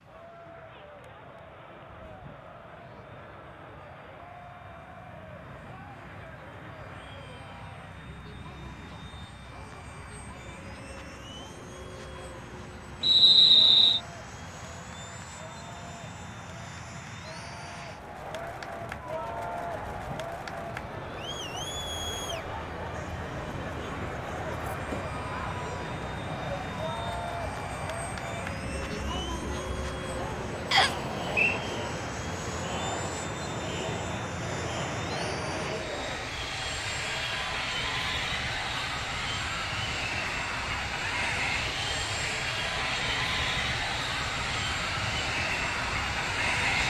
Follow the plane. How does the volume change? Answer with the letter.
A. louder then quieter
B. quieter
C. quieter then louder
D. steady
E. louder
E.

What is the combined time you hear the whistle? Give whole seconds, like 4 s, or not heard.
2 s.